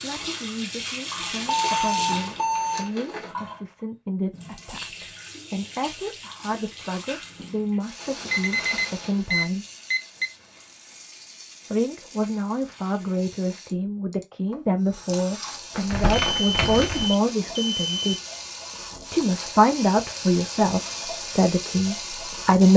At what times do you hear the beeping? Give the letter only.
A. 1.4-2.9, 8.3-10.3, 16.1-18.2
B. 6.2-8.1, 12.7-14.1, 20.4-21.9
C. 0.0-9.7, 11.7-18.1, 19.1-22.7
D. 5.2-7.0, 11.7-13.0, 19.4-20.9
A.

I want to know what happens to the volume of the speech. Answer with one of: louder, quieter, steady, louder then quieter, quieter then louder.
louder.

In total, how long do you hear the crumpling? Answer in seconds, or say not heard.
5 s.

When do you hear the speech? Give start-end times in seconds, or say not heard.
0.0-9.7, 11.7-18.1, 19.1-22.7.